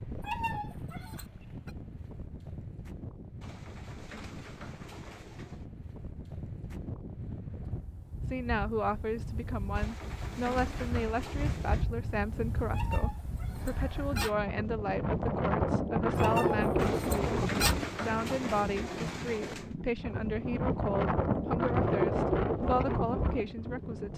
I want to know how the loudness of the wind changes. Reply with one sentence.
The volume of the wind goes up.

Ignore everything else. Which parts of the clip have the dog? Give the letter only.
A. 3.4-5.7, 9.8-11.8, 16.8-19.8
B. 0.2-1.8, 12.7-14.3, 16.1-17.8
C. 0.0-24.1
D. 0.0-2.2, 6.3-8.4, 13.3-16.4
B.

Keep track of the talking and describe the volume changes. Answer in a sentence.
The loudness of the talking stays about the same.